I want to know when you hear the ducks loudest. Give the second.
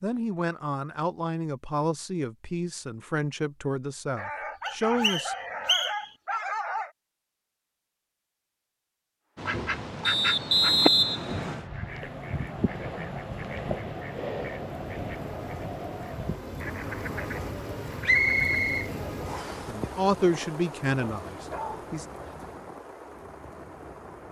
11 s.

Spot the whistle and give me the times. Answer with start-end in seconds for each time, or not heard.
4.7-6.1, 10.1-11.7, 18.1-19.6.